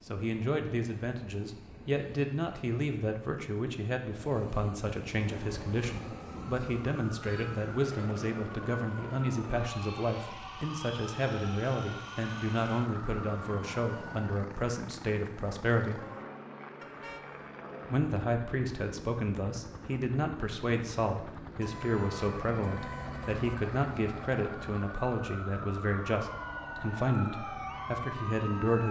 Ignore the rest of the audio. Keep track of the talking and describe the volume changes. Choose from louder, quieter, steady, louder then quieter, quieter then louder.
steady.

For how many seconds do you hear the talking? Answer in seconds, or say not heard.
27 s.